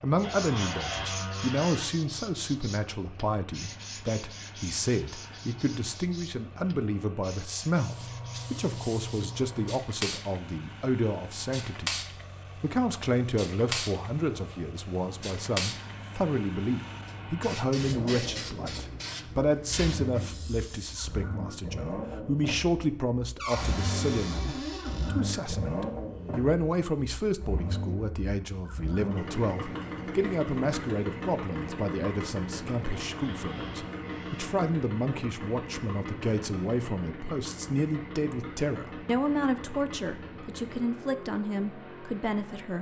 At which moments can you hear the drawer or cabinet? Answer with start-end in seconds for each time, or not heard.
0.2-1.9, 23.4-25.1, 33.0-34.6.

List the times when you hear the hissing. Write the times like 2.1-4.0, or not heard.
7.8-21.1.